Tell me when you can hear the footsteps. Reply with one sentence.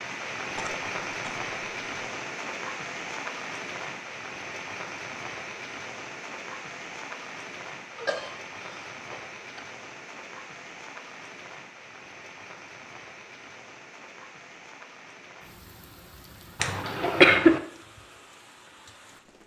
The footsteps can't be heard in this clip.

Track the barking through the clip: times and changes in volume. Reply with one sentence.
You can't hear the barking here.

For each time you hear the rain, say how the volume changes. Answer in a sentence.
You can hear the rain from 0.0 to 19.4 s, getting quieter.